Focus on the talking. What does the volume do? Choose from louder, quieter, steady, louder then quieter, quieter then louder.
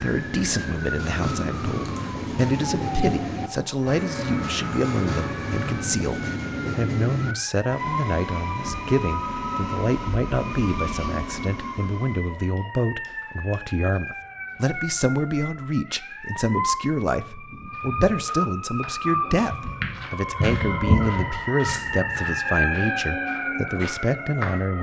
steady.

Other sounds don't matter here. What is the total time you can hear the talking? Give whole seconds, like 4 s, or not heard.
25 s.